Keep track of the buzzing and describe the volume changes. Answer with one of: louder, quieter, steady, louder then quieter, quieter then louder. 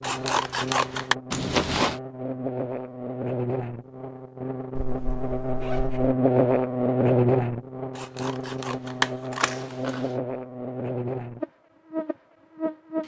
louder then quieter.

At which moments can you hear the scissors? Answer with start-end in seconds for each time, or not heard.
0.0-1.1, 8.0-9.8.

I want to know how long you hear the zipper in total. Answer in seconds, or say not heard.
3 s.